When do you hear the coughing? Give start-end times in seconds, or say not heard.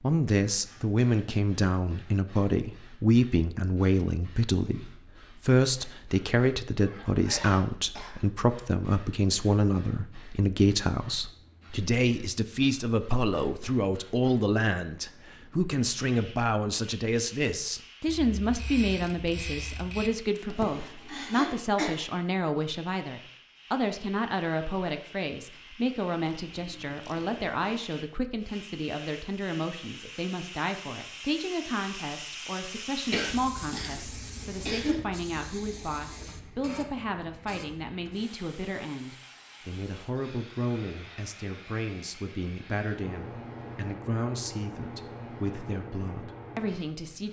6.8-8.2, 20.5-21.9, 33.1-35.0.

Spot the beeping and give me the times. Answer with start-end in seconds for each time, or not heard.
not heard.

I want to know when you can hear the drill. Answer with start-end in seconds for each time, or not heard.
not heard.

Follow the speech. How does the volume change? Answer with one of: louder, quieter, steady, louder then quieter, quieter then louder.
quieter.